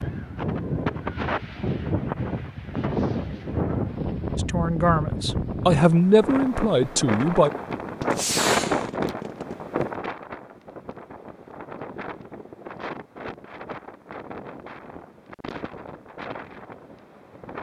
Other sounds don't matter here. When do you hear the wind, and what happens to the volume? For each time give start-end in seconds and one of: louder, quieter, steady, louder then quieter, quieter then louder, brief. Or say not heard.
0.0-17.5 quieter.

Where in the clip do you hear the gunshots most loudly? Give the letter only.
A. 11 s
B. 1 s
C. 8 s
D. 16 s
C.